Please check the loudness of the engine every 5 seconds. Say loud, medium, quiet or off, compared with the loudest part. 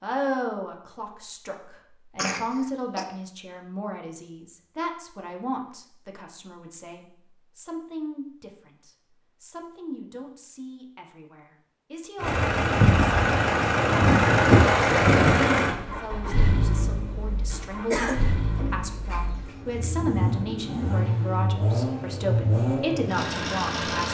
off, off, loud, medium, medium.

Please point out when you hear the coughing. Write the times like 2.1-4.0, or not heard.
2.1-3.0, 17.9-19.6.